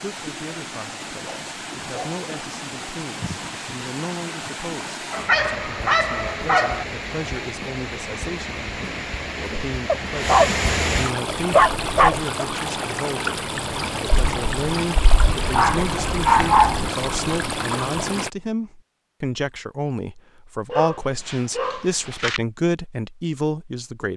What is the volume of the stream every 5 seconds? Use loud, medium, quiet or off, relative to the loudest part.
medium, medium, loud, loud, off.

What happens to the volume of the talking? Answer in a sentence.
The volume of the talking goes up.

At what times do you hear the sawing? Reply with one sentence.
You can't hear the sawing here.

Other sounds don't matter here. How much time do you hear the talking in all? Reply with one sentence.
You can hear the talking for 24 seconds altogether.